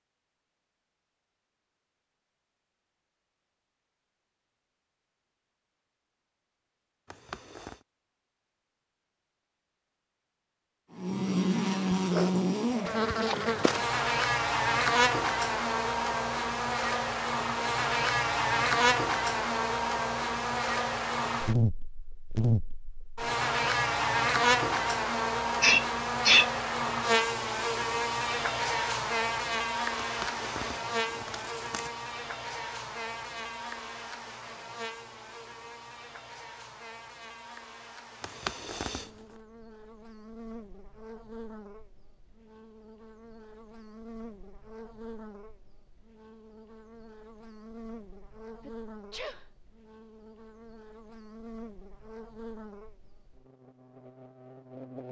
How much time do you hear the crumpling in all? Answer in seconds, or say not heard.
4 s.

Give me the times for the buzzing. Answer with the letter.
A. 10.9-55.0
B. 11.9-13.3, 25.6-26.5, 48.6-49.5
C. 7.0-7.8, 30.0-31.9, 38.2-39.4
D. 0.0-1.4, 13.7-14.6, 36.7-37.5
A.